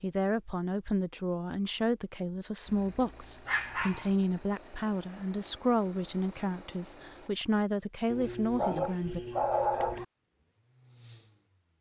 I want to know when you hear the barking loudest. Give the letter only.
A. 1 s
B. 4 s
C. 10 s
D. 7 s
C.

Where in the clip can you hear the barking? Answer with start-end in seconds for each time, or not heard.
3.5-4.1, 8.1-10.1.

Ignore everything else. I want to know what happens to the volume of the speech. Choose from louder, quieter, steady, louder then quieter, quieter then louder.
steady.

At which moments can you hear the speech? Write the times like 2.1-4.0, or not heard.
0.0-9.2.